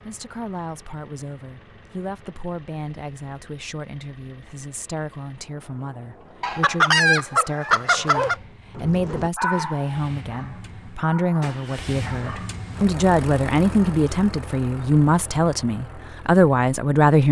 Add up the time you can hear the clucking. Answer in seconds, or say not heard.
2 s.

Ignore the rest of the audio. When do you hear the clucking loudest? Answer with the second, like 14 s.
7 s.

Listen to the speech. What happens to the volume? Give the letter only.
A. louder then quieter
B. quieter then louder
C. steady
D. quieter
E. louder
E.